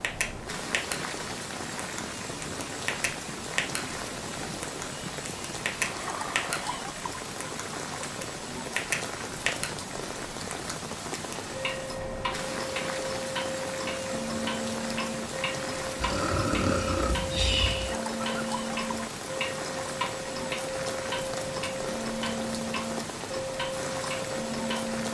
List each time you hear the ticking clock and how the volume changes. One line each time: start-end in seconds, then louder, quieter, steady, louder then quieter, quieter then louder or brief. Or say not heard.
0.0-0.9 brief
1.8-3.8 brief
4.6-6.6 brief
7.4-9.7 brief
10.5-25.0 steady.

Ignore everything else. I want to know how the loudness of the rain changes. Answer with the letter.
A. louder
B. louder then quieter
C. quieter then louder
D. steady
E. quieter
D.